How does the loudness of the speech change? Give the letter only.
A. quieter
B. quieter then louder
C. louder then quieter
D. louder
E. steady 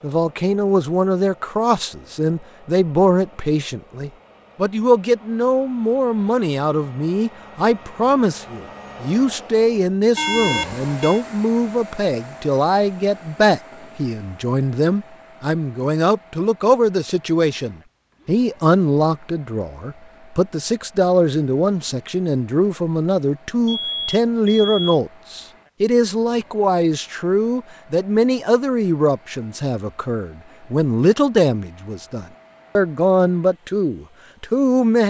E.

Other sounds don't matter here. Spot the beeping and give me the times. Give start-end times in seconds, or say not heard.
10.2-11.2, 23.6-25.0.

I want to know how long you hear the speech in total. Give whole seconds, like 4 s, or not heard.
35 s.